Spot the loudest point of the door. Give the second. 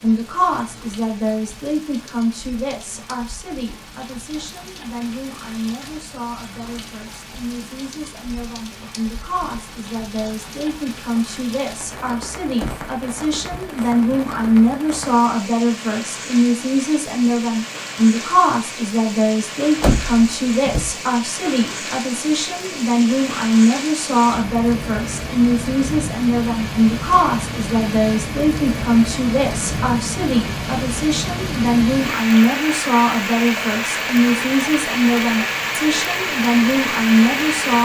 20 s.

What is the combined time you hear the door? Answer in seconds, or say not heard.
3 s.